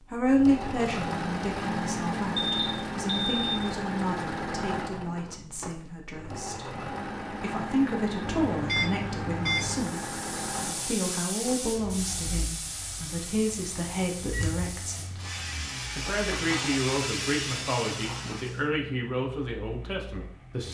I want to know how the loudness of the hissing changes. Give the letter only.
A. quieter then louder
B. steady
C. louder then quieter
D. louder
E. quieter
A.